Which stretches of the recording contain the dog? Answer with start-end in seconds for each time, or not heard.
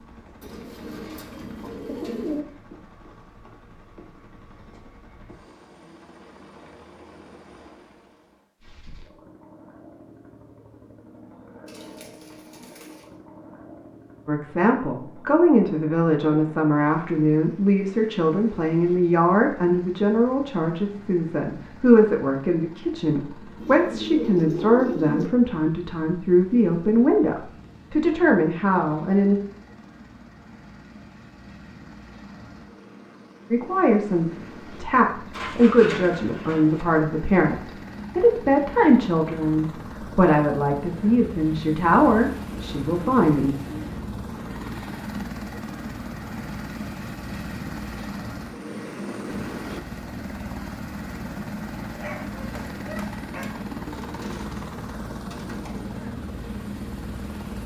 52.0-53.6.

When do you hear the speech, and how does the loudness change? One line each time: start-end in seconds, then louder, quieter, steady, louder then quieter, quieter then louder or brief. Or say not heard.
14.2-29.4 steady
33.5-43.5 steady.